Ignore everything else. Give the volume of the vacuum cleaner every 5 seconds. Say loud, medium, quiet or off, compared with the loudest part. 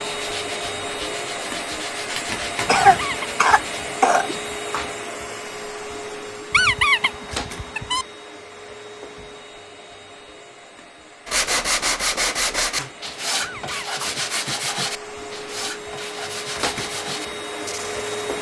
loud, medium, medium, loud.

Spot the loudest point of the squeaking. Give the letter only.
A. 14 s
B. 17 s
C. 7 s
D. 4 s
C.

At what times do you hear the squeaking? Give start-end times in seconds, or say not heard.
2.8-3.6, 6.5-8.1, 13.4-13.9.